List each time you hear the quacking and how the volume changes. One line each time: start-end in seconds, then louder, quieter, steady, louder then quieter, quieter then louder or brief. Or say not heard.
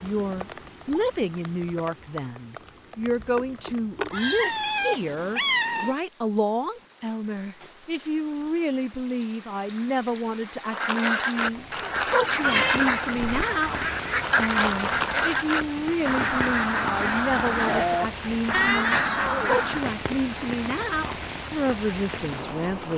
10.7-19.9 steady.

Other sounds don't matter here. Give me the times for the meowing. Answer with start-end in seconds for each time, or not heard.
4.3-6.0, 12.4-13.4, 18.5-19.4.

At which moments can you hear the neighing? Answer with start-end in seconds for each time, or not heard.
3.2-4.5.